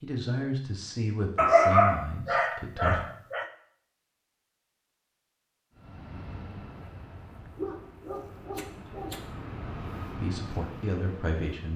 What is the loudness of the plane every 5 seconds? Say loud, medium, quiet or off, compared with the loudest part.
off, loud, loud.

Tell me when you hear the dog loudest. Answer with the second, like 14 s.
2 s.